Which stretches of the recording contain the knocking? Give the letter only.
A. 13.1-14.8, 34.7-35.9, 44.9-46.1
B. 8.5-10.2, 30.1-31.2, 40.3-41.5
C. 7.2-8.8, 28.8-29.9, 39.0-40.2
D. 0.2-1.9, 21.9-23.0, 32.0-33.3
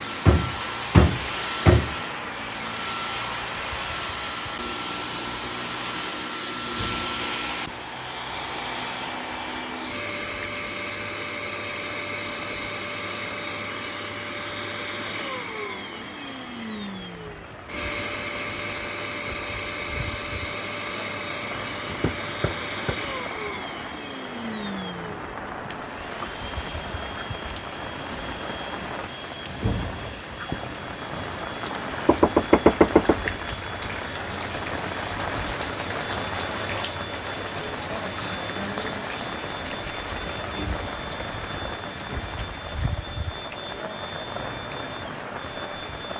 D.